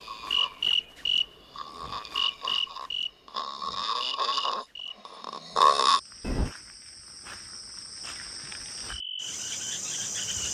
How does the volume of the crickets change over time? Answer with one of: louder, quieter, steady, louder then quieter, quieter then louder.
quieter then louder.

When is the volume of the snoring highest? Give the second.
6 s.